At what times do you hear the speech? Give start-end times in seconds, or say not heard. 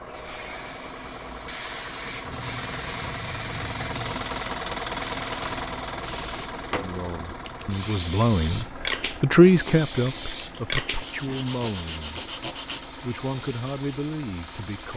6.8-14.9.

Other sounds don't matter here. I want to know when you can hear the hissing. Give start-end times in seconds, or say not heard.
0.0-14.9.